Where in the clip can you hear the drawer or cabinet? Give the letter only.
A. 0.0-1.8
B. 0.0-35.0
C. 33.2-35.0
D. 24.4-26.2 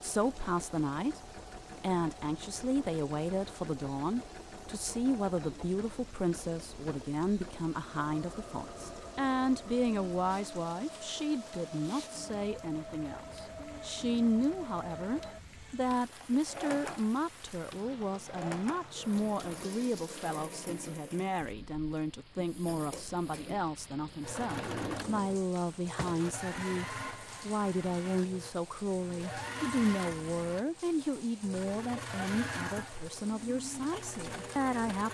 D.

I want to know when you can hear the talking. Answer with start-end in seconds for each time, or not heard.
0.0-35.0.